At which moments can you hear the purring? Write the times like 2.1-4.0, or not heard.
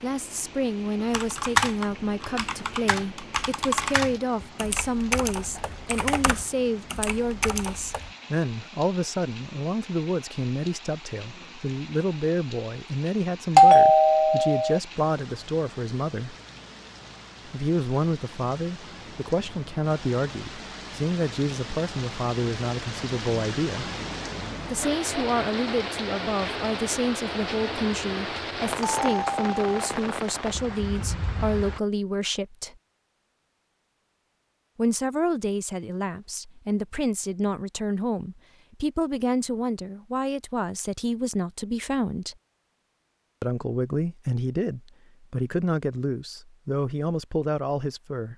not heard.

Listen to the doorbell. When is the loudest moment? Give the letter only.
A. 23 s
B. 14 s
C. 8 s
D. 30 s
B.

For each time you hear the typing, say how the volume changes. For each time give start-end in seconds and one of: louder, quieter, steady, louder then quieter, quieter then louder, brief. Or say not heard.
1.1-8.1 quieter.